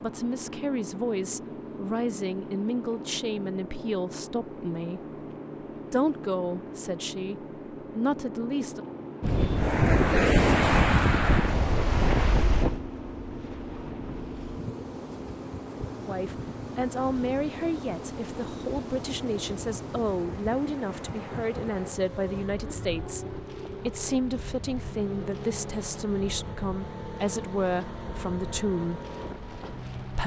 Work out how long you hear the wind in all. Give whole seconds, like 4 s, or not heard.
21 s.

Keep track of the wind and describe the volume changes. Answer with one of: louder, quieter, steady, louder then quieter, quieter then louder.
quieter.